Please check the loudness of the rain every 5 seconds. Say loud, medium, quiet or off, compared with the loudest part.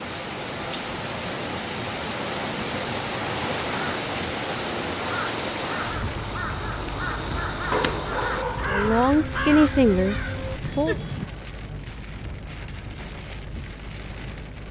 loud, medium, medium.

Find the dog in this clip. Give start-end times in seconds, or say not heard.
7.7-9.1.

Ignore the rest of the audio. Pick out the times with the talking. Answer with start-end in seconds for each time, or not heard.
8.7-10.9.